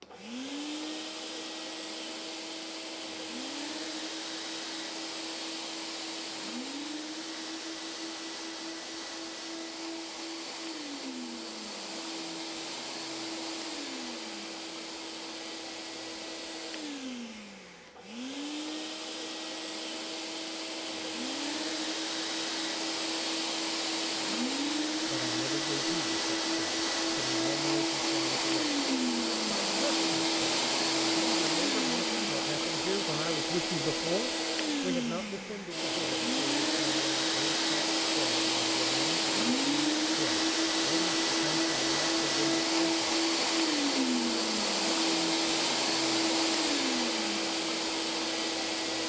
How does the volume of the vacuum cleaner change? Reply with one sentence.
The volume of the vacuum cleaner goes up.